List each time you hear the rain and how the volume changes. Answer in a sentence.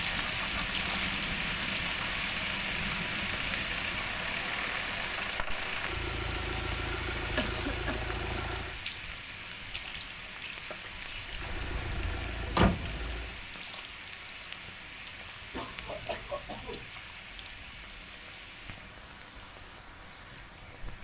You can hear the rain from 0.0 to 20.9 s, getting quieter.